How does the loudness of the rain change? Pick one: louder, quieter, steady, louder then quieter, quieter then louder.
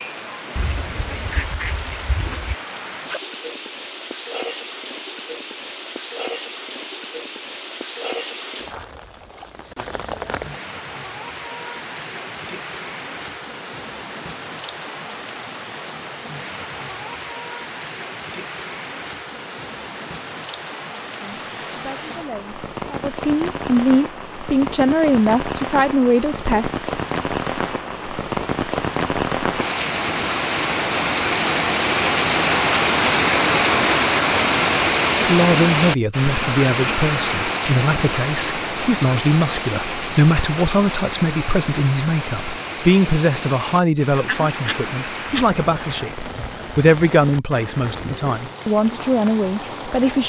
louder then quieter.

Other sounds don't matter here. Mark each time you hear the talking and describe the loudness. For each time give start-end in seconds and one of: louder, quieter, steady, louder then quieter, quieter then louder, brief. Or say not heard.
21.2-26.9 louder
35.2-50.2 steady.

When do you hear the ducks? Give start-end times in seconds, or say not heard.
0.6-2.5, 44.1-46.1.